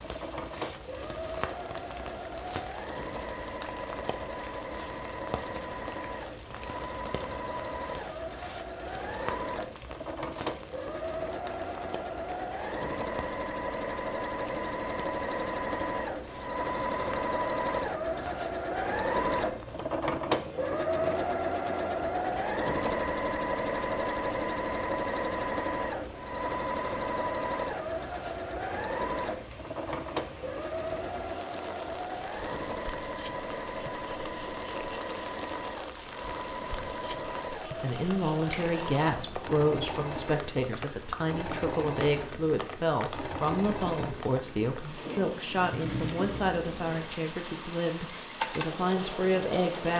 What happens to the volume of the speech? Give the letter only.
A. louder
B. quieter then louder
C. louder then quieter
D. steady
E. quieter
D.